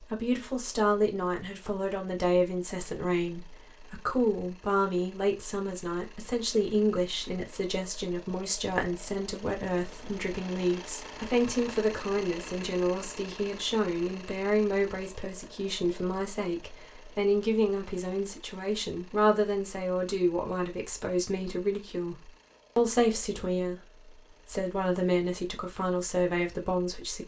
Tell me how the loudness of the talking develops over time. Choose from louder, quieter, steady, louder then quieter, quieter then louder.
steady.